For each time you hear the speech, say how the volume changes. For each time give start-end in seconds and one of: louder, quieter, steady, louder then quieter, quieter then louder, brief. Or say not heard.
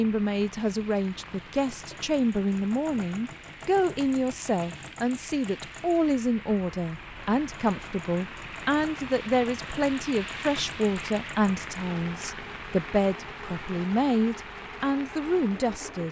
0.0-16.0 steady.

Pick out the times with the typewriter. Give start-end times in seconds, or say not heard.
not heard.